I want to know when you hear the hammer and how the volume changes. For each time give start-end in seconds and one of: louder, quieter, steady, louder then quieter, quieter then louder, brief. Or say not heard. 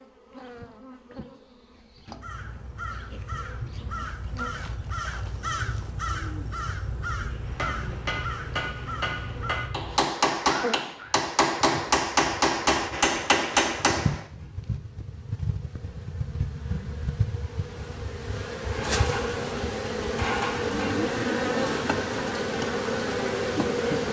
7.2-14.2 louder.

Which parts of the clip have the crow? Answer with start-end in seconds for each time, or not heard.
2.1-11.2.